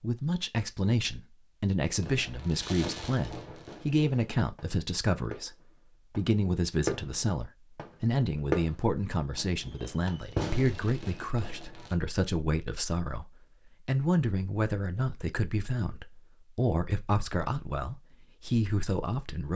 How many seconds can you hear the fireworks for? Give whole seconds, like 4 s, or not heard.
9 s.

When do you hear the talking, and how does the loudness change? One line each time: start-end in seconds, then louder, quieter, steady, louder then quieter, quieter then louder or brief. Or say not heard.
0.0-19.5 steady.